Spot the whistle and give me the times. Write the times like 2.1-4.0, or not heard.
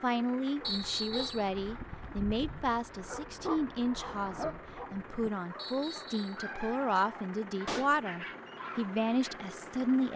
0.6-1.5, 5.5-6.4.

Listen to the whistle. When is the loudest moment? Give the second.
1 s.